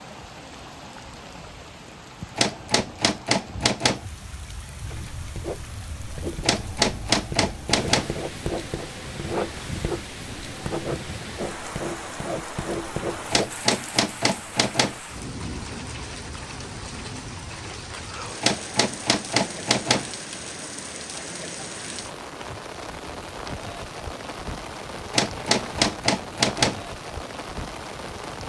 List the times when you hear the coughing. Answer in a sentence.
You can't hear the coughing here.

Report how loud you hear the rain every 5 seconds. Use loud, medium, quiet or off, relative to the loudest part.
medium, loud, loud, loud, loud, loud.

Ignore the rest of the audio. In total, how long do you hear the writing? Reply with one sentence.
You can hear the writing for 9 seconds altogether.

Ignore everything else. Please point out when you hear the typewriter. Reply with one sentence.
You can hear the typewriter from 2.4 to 4.0 s, from 6.4 to 8.2 s, from 13.3 to 15.0 s, from 18.4 to 20.1 s and from 25.1 to 26.8 s.